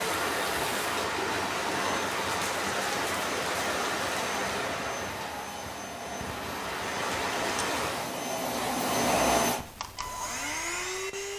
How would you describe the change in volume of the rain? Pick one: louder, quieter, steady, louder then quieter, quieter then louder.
quieter then louder.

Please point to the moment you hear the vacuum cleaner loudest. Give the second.
9 s.